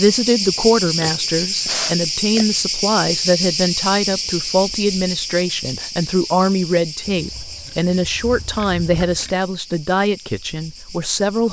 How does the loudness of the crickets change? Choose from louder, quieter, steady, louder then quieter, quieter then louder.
quieter.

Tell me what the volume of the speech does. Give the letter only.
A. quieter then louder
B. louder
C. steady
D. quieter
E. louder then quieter
C.